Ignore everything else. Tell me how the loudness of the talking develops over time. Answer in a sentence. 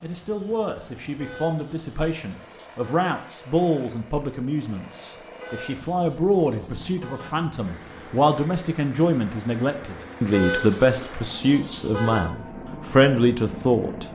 The loudness of the talking goes up.